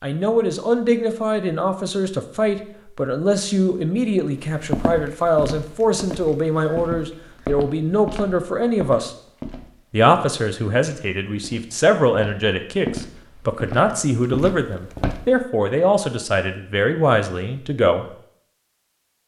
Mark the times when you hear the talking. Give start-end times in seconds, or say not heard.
0.0-9.1, 9.9-18.1.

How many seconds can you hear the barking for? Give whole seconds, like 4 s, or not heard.
not heard.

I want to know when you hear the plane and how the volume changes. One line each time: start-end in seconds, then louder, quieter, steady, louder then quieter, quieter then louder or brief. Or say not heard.
not heard.